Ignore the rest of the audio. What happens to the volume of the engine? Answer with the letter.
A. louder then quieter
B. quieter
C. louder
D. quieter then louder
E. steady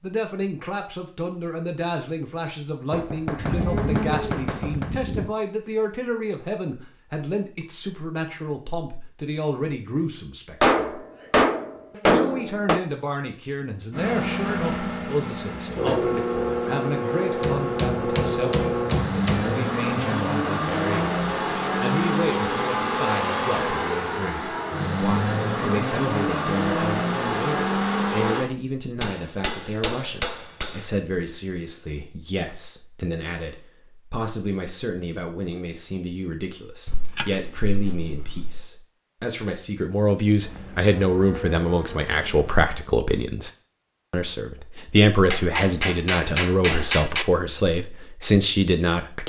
E.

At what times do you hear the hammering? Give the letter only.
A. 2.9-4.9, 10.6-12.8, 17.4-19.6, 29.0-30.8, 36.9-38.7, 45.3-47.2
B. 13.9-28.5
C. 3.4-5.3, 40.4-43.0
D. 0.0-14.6
A.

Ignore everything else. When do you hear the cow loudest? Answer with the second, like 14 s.
4 s.